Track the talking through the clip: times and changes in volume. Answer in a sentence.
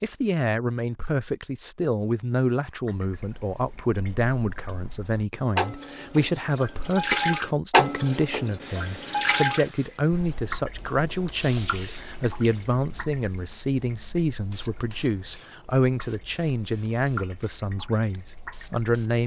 The talking can be heard from 0.0 to 19.2 s, at a steady volume.